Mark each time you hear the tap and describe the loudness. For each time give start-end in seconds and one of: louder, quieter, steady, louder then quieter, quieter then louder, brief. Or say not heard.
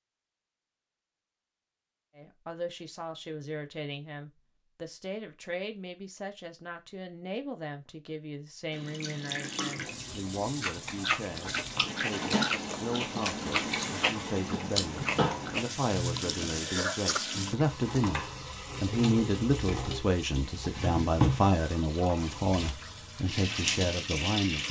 8.7-24.6 louder.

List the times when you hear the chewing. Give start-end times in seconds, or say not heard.
10.6-17.2.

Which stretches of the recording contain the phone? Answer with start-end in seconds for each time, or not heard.
not heard.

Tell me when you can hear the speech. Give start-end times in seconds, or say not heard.
2.1-24.6.